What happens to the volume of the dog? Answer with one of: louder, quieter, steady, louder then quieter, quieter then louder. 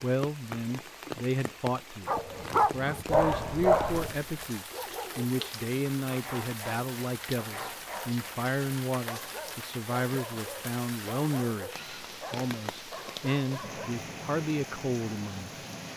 quieter.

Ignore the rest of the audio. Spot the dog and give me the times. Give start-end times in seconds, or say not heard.
2.0-13.9.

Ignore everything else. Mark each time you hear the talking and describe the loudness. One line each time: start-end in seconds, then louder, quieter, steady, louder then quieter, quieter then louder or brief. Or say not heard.
0.0-15.5 steady.